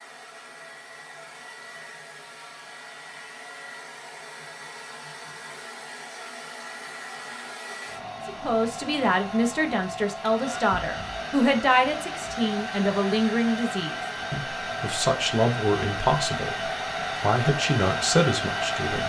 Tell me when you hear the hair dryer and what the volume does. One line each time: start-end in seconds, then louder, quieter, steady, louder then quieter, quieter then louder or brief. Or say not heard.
0.0-19.0 louder.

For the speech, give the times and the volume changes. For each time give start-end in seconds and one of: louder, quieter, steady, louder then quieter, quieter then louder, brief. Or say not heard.
8.2-19.0 steady.